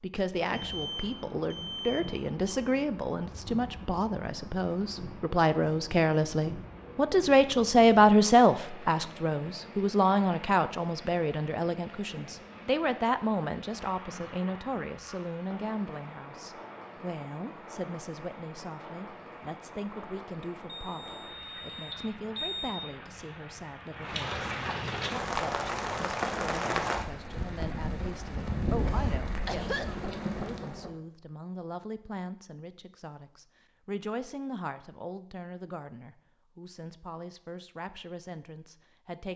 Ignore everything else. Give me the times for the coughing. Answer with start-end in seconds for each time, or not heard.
28.2-30.1.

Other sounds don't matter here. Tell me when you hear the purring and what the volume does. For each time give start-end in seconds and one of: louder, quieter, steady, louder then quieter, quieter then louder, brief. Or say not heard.
not heard.